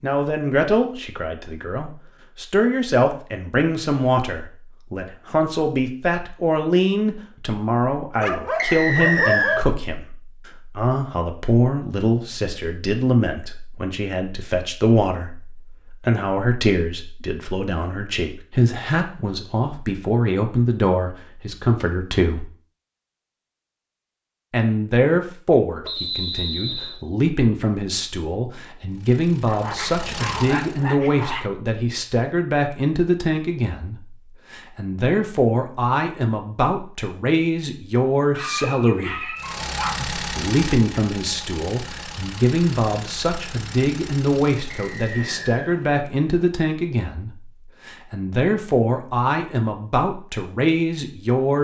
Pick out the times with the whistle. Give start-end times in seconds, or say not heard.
8.6-9.6, 25.9-27.0, 44.7-45.7.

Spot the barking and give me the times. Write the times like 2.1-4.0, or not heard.
8.2-9.8, 29.4-31.5, 38.3-40.0.